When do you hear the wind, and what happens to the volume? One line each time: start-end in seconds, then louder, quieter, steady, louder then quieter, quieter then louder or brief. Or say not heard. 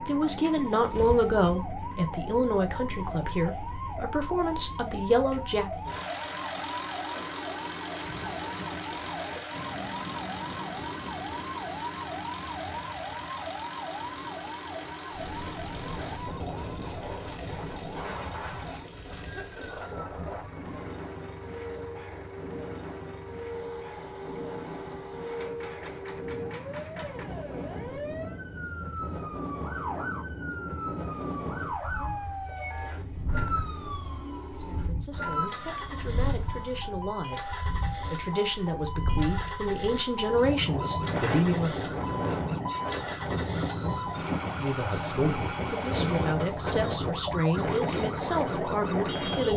15.1-49.5 louder.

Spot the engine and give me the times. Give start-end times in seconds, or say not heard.
0.5-46.3.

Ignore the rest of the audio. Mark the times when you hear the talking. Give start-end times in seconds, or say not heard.
0.0-5.8, 34.5-42.0, 44.5-49.5.